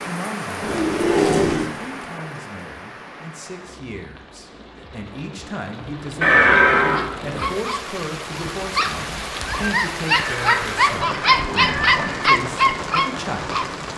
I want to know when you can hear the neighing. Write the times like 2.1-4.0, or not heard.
0.6-1.8, 6.2-7.0, 10.1-12.3.